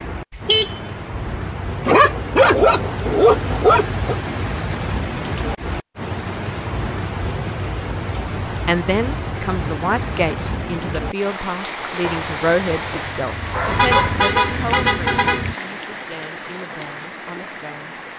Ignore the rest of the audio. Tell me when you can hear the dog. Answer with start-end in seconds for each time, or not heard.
1.4-4.2, 12.0-14.2.